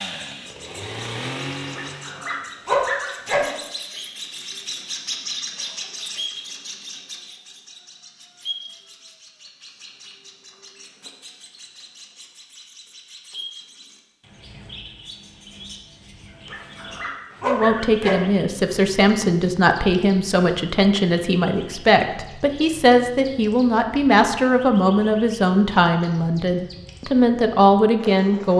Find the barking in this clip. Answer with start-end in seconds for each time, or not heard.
1.7-3.5, 16.4-18.2.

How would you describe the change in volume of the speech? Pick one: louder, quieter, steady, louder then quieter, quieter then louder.
steady.